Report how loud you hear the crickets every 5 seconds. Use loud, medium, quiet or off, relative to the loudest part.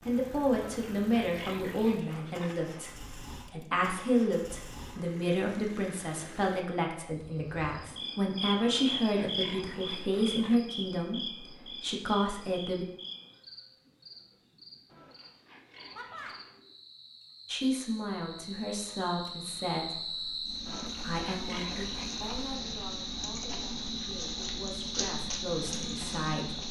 off, loud, medium, medium, loud, loud.